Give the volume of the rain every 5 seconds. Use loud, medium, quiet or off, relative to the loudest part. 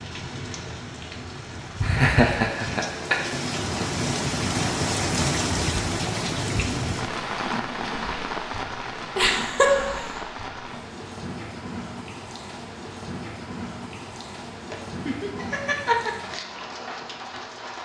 loud, loud, medium, medium.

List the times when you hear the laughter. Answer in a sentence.
You can hear the laughter from 1.8 to 3.3 s, from 9.2 to 10.2 s and from 14.7 to 16.1 s.